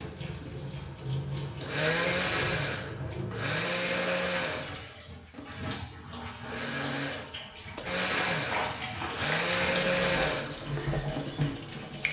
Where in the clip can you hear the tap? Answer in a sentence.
The tap can be heard from 0.0 to 12.0 s.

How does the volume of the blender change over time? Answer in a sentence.
The loudness of the blender goes down, then up.